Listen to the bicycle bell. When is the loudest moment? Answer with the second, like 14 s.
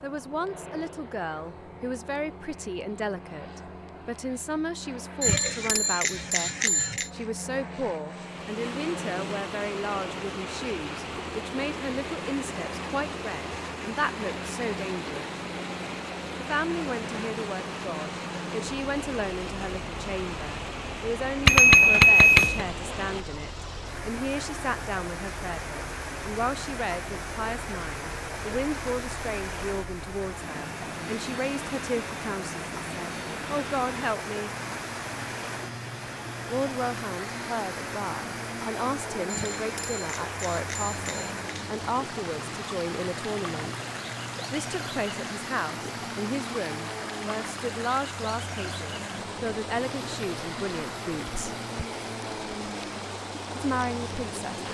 22 s.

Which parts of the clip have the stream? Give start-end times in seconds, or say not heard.
8.1-54.6.